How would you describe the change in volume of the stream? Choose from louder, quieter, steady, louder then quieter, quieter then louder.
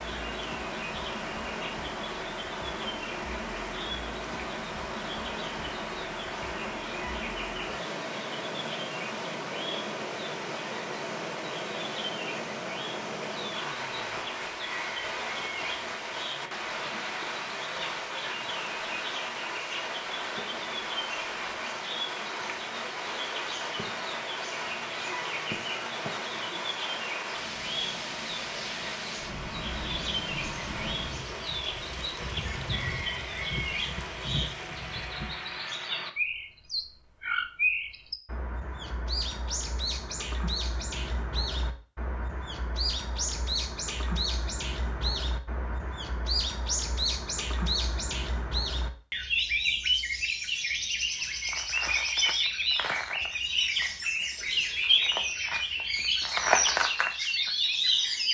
steady.